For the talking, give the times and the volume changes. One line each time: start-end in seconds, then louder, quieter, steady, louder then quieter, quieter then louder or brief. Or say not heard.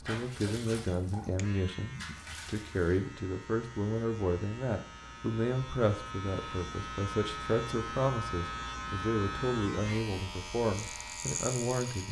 0.0-12.0 steady.